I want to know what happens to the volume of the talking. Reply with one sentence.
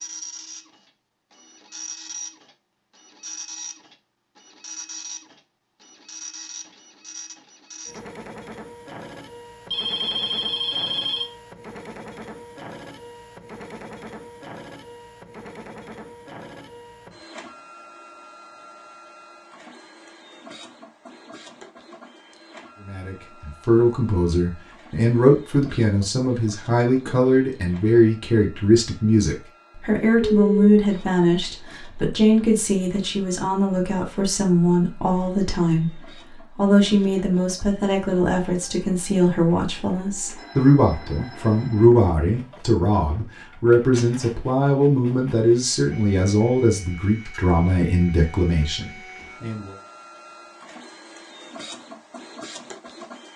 The volume of the talking stays about the same.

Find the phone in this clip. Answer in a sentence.
The phone can be heard from 9.7 to 11.2 s, from 30.2 to 30.8 s and from 40.4 to 41.9 s.